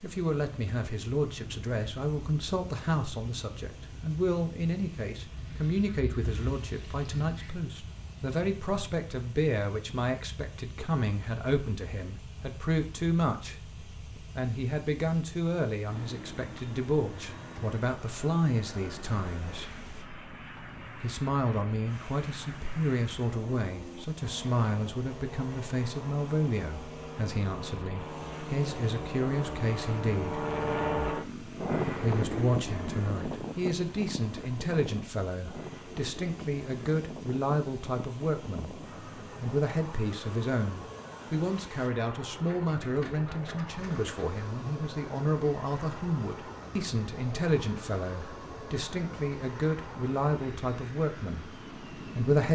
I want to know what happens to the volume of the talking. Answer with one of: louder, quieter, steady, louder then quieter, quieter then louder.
steady.